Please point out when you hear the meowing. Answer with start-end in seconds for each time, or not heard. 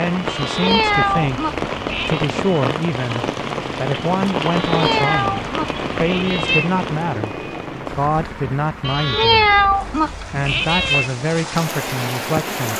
0.2-2.2, 4.4-6.7, 8.8-11.1.